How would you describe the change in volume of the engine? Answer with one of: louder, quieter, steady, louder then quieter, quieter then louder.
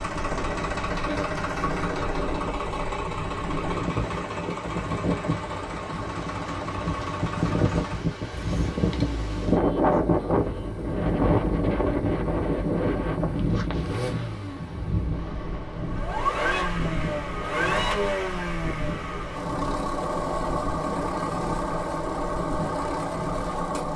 quieter then louder.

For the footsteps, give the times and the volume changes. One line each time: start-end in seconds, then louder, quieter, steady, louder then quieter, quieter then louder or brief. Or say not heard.
not heard.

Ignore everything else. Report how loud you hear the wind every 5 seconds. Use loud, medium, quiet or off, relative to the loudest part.
medium, loud, loud, medium, medium.